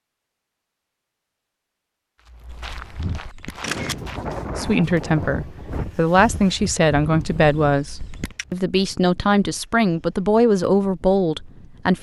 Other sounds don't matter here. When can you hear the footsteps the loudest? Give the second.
3 s.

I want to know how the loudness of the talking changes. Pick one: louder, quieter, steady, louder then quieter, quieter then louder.
steady.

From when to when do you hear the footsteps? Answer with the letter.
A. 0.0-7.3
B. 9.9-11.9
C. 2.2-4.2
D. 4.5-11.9
C.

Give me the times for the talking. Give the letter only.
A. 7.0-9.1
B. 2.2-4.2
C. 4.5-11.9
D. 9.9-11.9
C.